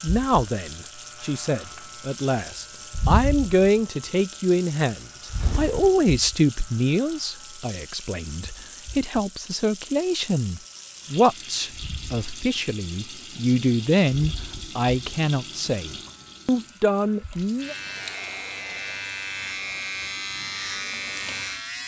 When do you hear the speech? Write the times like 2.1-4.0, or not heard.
0.0-17.8.